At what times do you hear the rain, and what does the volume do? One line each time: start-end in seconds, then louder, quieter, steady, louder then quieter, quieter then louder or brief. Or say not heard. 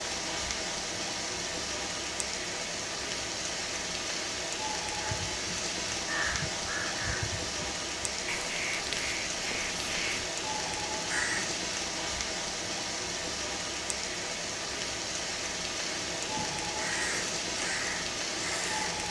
0.0-19.0 steady.